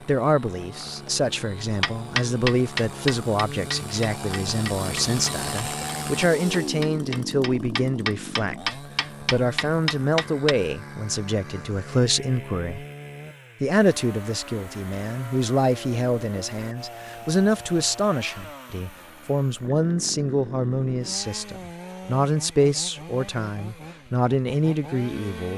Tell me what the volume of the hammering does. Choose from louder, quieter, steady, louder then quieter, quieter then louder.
quieter then louder.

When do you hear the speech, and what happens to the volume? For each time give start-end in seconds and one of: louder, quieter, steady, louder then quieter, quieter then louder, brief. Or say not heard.
0.1-12.8 steady
13.6-25.5 steady.